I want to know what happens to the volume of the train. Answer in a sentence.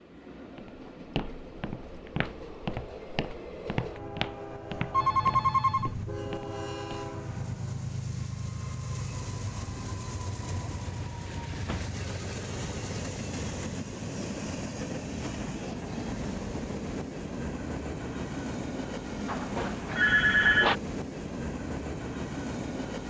The volume of the train goes up.